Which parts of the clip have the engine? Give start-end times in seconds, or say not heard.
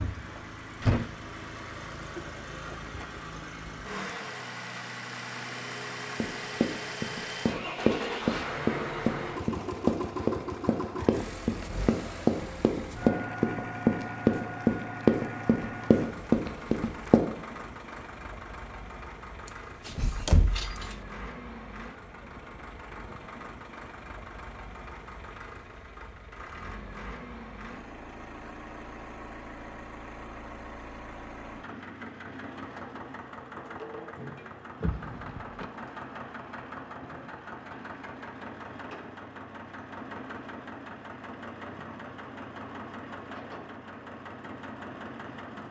0.0-45.6.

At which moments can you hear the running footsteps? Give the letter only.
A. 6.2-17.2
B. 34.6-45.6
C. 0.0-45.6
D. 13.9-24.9
A.